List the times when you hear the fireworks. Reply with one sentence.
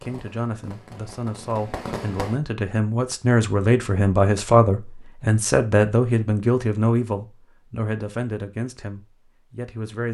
The fireworks can be heard from 0.0 to 2.4 s.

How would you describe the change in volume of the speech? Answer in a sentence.
The loudness of the speech goes up, then down.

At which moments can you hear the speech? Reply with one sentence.
You can hear the speech from 0.0 to 10.0 s.